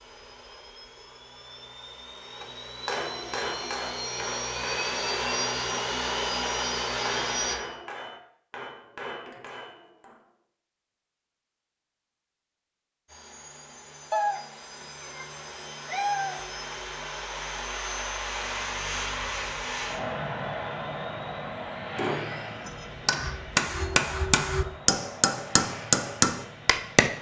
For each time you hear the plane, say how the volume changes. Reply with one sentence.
You can hear the plane from 0.0 to 7.6 s, getting louder; and from 13.1 to 27.1 s, getting louder then quieter.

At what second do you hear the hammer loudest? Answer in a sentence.
The volume of the hammer peaks at 26 seconds.